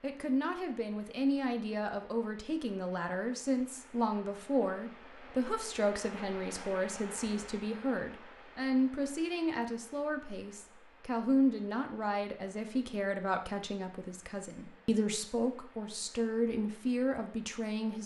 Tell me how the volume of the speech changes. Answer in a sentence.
The loudness of the speech stays about the same.